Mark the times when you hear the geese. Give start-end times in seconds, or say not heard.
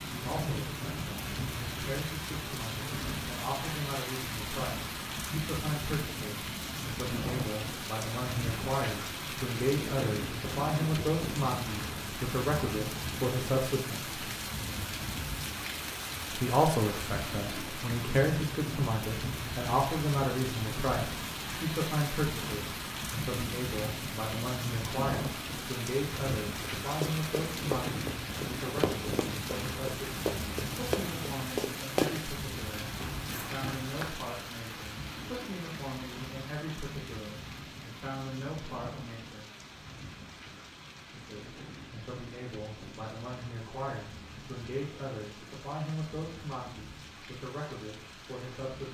not heard.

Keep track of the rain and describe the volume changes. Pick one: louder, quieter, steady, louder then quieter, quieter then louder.
quieter.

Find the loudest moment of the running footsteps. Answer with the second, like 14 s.
32 s.